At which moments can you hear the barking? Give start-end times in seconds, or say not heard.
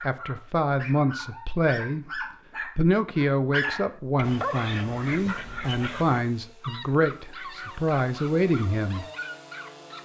0.0-10.0.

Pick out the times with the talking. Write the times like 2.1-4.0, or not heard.
0.0-9.1.